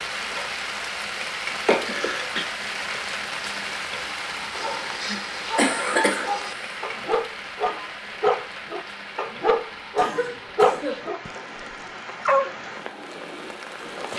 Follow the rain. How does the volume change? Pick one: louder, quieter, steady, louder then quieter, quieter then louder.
quieter.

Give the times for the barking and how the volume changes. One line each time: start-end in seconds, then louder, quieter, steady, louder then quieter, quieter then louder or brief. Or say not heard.
4.5-12.6 louder then quieter.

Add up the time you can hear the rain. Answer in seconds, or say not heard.
14 s.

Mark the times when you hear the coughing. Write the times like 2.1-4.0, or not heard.
1.6-2.5, 5.0-6.8, 9.9-11.1.